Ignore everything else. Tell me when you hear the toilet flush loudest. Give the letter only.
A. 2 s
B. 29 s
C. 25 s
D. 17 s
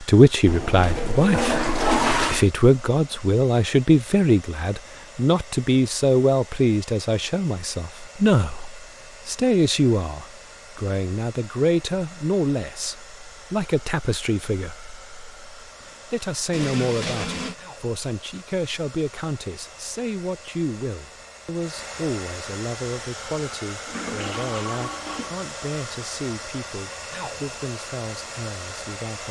A.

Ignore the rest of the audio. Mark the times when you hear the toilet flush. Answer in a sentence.
You can hear the toilet flush from 0.5 to 2.5 s, from 16.5 to 17.6 s and from 23.9 to 25.4 s.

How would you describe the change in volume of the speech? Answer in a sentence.
The loudness of the speech goes down.